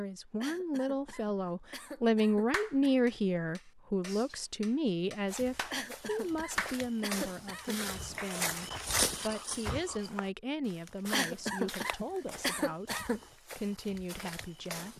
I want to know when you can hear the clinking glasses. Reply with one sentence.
The clinking glasses can't be heard in this clip.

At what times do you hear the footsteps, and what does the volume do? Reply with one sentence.
The footsteps can be heard from 5.2 to 14.9 s, getting louder then quieter.